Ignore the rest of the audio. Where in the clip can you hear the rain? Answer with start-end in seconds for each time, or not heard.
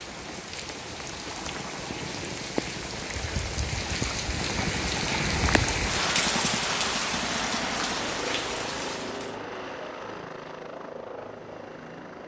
0.0-9.3.